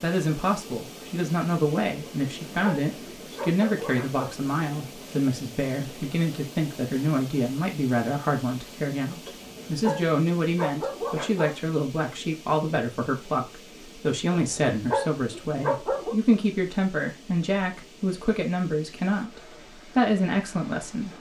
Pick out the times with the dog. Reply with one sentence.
You can hear the dog from 2.0 to 4.3 s, from 9.2 to 11.6 s and from 14.3 to 16.1 s.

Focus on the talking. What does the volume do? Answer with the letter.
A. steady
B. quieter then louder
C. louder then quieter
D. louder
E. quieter
A.